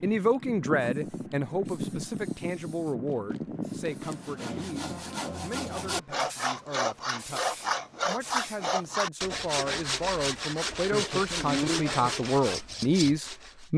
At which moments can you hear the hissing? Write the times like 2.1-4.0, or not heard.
0.0-9.1.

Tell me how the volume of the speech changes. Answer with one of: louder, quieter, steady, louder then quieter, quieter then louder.
quieter then louder.